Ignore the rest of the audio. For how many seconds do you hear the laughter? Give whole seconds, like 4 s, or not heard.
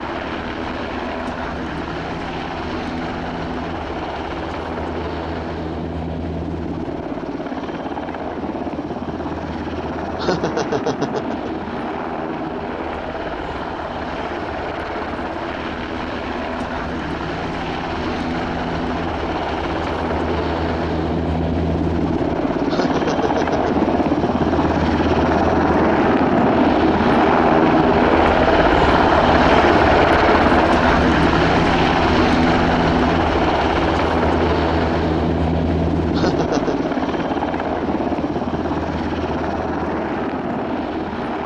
3 s.